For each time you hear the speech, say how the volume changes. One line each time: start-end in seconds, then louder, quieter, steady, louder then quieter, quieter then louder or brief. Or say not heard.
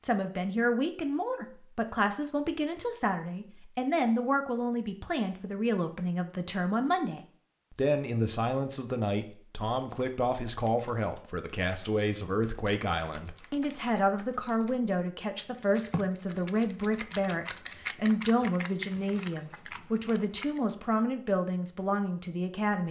0.0-22.8 steady.